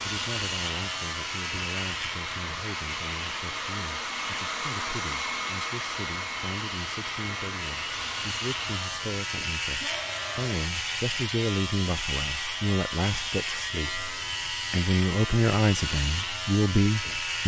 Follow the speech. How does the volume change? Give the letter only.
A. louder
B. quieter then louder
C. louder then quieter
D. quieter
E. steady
A.